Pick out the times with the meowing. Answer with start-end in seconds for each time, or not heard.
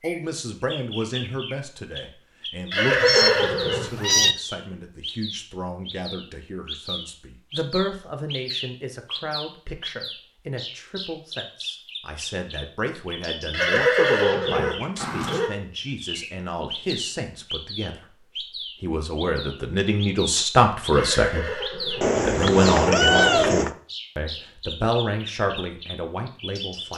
3.0-4.3, 22.0-23.8.